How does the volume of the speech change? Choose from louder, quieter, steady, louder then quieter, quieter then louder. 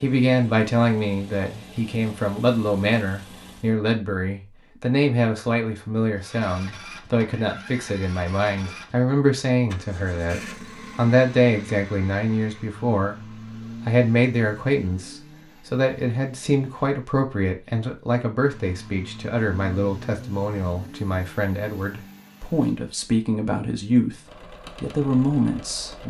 steady.